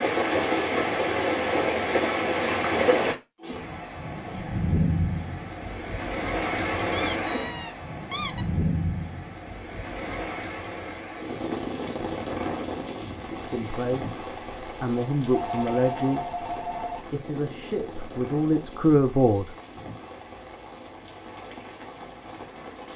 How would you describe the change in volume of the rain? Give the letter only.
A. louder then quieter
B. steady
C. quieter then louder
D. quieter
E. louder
D.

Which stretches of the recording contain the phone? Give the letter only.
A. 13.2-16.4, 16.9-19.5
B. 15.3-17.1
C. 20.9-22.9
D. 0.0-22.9
B.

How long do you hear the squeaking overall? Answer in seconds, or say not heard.
2 s.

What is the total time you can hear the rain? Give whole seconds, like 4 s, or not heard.
23 s.